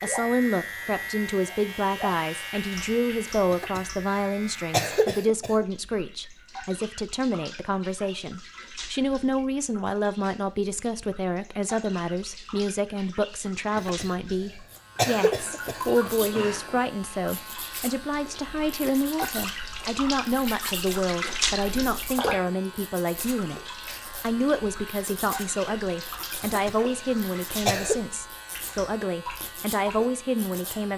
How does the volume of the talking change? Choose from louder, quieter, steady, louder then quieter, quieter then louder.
steady.